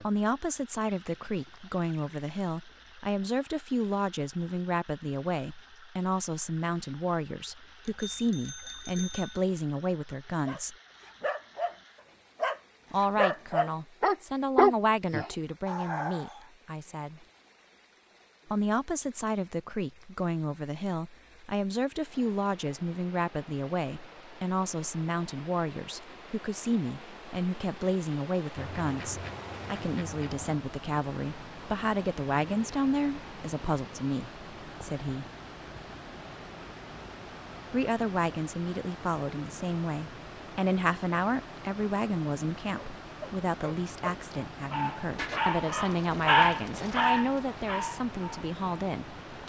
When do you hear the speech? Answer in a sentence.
You can hear the speech from 0.0 to 10.8 s, from 12.9 to 17.2 s, from 18.5 to 35.2 s and from 37.7 to 49.4 s.